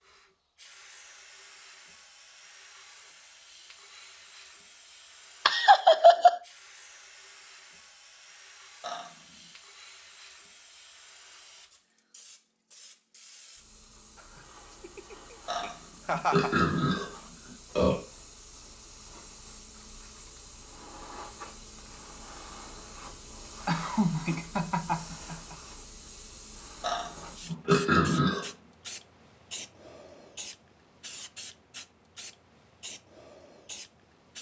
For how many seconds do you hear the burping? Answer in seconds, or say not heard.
5 s.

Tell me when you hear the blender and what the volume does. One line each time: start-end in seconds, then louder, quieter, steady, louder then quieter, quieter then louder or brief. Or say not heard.
not heard.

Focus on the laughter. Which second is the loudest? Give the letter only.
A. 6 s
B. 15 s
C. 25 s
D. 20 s
A.